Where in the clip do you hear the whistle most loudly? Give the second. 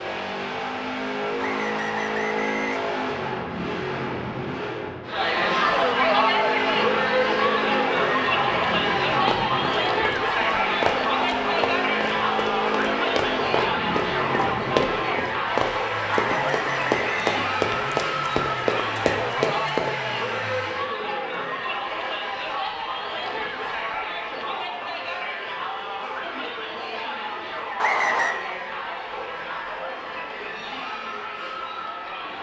28 s.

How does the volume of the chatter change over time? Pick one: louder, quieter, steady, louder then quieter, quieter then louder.
quieter.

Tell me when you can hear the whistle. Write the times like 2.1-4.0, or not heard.
1.4-3.2, 16.3-17.4, 27.8-28.4.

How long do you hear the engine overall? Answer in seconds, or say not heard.
21 s.